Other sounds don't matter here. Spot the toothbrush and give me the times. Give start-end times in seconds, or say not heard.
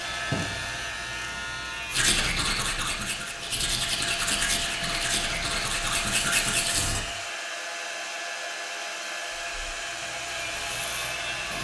1.9-7.0.